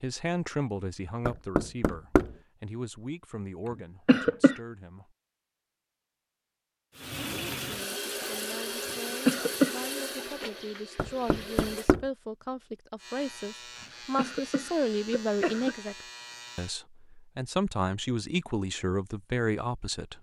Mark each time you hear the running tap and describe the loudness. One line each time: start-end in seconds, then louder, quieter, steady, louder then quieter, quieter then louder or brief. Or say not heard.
7.0-11.9 quieter.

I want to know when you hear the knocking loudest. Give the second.
2 s.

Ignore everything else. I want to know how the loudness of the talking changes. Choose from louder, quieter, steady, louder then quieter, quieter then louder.
quieter then louder.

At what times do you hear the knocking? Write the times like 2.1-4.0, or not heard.
1.2-2.4, 10.9-12.1.